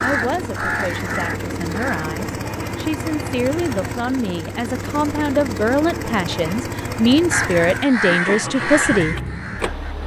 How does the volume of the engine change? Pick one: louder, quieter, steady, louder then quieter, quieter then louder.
steady.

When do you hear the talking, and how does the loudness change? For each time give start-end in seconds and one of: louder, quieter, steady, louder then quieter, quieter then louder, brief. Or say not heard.
0.0-9.2 louder.